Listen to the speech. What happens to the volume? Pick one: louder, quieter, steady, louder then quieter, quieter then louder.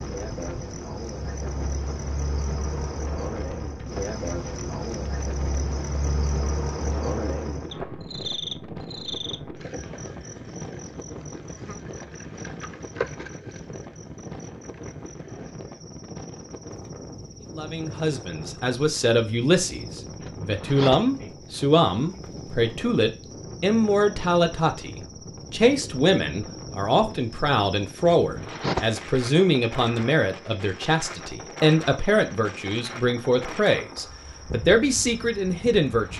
steady.